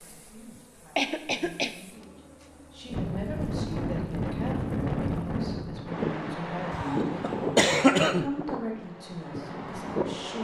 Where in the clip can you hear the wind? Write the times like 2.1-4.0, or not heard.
2.9-10.3.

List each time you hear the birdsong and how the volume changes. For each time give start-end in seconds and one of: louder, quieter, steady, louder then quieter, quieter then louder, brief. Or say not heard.
not heard.